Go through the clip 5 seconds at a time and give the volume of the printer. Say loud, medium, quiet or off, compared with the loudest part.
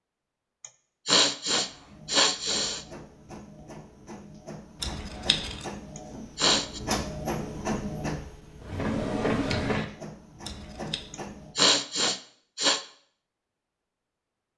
quiet, loud, medium.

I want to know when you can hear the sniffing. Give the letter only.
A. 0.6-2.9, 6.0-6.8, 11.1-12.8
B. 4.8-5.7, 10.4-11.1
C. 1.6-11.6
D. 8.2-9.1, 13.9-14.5
A.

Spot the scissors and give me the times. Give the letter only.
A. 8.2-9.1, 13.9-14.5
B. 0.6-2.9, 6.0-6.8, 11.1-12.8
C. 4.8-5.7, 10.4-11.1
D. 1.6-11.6
C.